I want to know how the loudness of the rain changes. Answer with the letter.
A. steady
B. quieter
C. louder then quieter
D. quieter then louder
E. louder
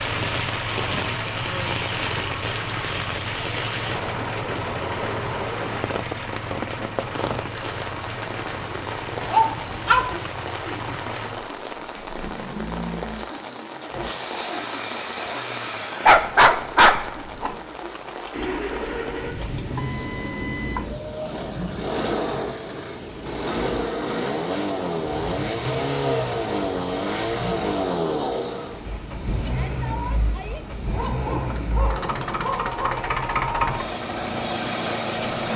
B.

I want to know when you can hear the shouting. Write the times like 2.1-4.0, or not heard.
29.4-30.6.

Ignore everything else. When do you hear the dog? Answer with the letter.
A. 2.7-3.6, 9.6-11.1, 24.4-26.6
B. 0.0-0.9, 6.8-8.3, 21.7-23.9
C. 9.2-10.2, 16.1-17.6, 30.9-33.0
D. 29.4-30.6
C.